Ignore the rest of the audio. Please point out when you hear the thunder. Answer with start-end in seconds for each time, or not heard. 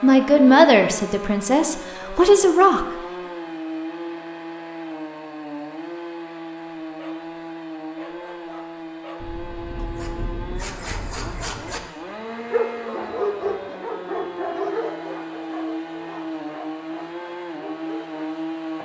9.2-11.9.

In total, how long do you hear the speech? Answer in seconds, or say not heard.
3 s.